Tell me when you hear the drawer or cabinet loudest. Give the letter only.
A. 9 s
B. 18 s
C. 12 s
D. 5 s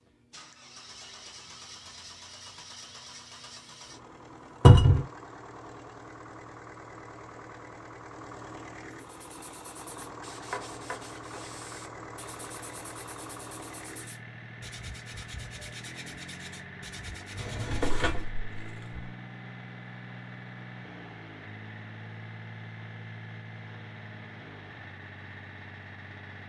D.